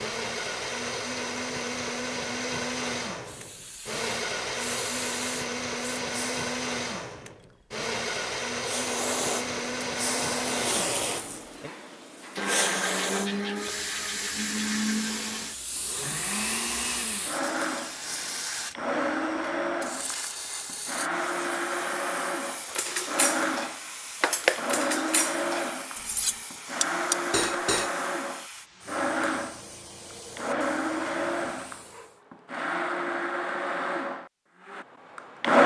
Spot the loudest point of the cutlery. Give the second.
24 s.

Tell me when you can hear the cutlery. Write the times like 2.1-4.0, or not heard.
22.6-27.9.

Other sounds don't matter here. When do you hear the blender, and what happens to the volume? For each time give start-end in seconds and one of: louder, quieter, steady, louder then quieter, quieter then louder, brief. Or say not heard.
0.0-35.6 steady.